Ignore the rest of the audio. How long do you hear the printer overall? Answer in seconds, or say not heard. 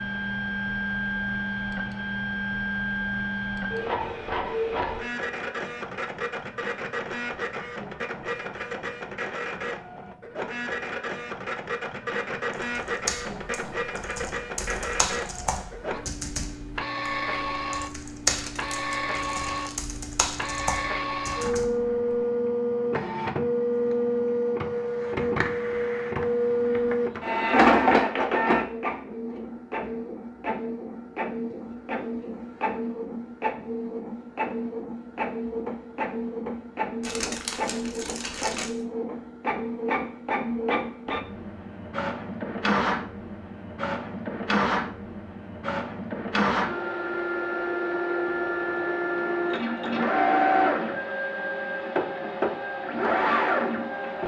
54 s.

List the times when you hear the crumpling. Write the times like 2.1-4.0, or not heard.
18.2-19.8, 37.0-38.8.